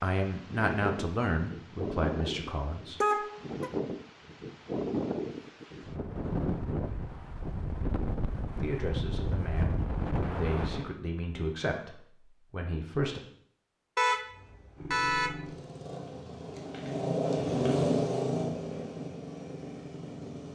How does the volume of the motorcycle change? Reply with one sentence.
The loudness of the motorcycle goes up, then down.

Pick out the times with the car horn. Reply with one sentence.
The car horn can be heard from 3.0 to 3.7 s and from 13.9 to 15.3 s.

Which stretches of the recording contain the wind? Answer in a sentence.
The wind can be heard from 0.0 to 10.9 s.